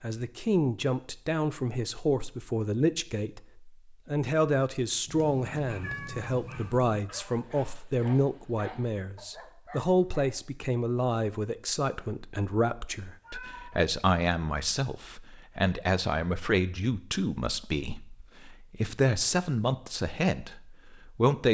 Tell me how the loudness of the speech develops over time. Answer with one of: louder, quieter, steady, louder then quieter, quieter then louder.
steady.